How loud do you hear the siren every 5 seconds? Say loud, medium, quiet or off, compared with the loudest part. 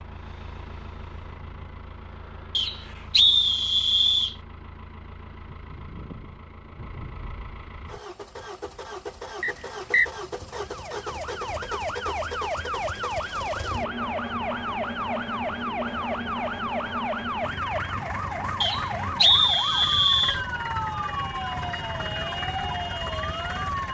off, off, loud, loud, loud.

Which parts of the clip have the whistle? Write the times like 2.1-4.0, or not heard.
2.5-4.3, 9.4-10.1, 18.6-20.4.